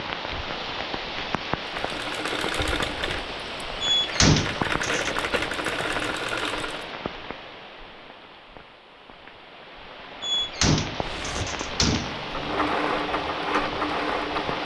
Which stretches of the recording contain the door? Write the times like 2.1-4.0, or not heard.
3.8-5.1, 10.2-12.2.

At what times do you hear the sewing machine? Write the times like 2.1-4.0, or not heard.
1.6-6.9, 11.1-14.6.